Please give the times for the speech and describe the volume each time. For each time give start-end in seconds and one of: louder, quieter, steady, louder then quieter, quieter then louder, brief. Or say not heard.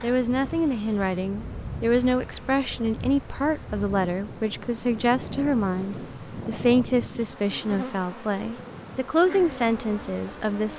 0.0-10.7 steady.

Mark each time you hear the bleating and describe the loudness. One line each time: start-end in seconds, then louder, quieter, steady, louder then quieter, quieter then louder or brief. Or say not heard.
not heard.